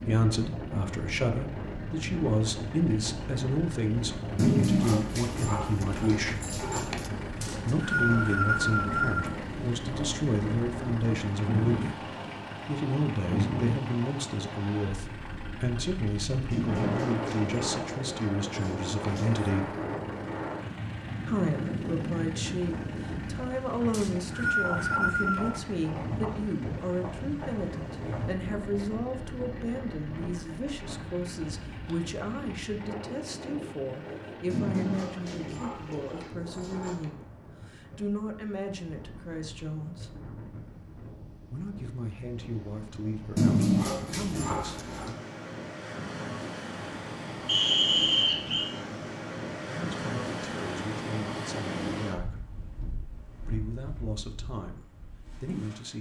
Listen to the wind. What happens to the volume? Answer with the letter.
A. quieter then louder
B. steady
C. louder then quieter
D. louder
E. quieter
A.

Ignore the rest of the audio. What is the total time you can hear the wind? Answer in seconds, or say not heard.
56 s.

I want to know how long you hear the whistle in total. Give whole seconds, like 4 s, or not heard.
5 s.